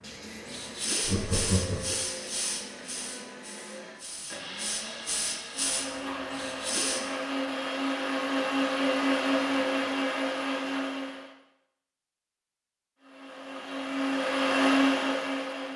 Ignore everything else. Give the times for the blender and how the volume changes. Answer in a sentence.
The blender can be heard from 0.0 to 11.3 s, getting louder; and briefly from 13.0 to 15.7 s.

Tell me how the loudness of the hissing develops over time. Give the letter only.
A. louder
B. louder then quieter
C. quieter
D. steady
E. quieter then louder
E.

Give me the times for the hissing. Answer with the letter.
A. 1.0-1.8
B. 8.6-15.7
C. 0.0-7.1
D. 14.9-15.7
C.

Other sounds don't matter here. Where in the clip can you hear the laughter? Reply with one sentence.
The laughter can be heard from 1.0 to 1.8 s.